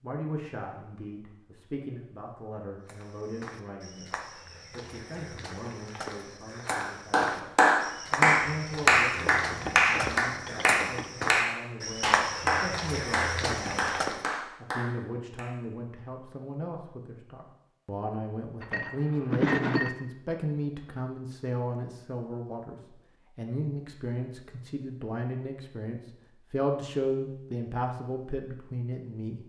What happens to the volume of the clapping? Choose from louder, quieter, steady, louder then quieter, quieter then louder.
quieter.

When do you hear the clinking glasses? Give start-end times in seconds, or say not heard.
9.2-11.1, 18.6-19.9.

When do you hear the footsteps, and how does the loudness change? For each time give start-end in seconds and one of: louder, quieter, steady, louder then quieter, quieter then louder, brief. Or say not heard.
2.9-14.2 louder.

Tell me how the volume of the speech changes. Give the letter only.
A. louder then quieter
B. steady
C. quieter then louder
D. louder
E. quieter
D.